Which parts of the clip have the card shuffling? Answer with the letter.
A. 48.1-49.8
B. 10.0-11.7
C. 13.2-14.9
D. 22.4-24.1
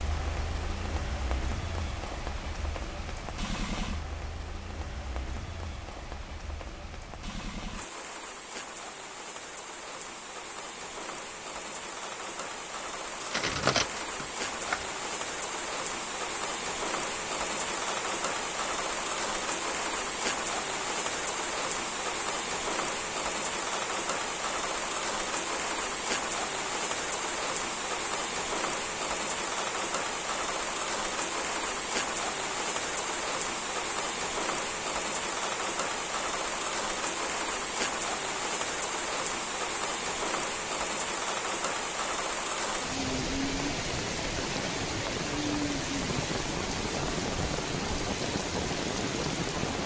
C.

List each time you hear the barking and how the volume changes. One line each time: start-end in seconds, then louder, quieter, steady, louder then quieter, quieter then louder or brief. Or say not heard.
not heard.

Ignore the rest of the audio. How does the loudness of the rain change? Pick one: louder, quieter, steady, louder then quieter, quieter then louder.
louder.